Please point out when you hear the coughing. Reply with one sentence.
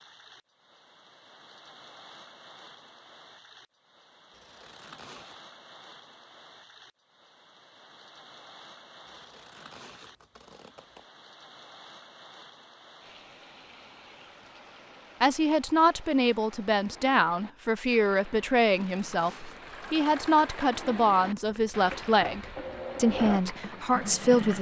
You can't hear the coughing here.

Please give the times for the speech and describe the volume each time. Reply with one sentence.
You can hear the speech from 15.2 to 24.5 s, at a steady volume.